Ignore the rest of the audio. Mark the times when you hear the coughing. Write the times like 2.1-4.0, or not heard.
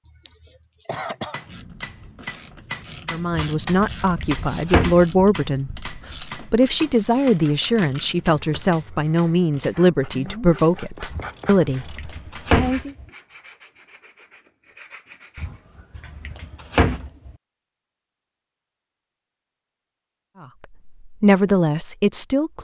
0.1-1.4.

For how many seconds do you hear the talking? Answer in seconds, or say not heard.
11 s.